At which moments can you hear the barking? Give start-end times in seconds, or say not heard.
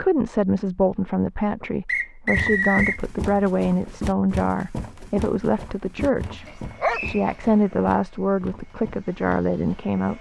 6.5-7.5.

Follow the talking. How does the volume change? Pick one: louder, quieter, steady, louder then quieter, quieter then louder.
steady.